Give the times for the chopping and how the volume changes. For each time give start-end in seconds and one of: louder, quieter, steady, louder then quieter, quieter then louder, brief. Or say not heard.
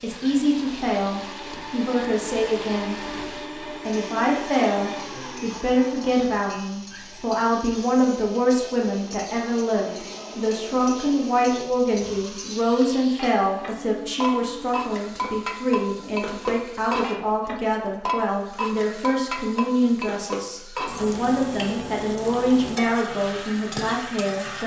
not heard.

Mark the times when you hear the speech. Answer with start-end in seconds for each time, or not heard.
0.0-3.0, 3.8-24.6.